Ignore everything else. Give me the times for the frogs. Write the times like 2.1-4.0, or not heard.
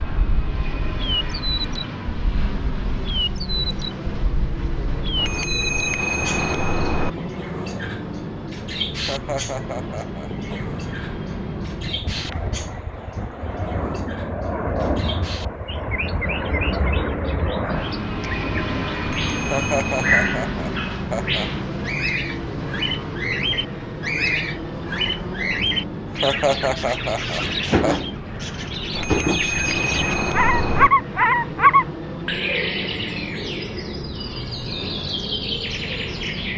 not heard.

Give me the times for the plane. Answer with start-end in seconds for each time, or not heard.
0.0-36.5.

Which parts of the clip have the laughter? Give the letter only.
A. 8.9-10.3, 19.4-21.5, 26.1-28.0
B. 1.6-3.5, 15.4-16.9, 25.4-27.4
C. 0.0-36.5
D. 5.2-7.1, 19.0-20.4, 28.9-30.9
A.